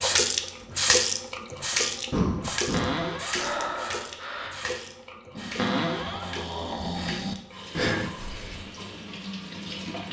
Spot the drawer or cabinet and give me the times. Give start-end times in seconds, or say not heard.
2.7-3.4, 5.5-6.2.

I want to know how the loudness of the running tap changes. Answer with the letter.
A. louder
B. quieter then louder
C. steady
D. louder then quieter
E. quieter
E.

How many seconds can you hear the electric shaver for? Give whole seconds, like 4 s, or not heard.
not heard.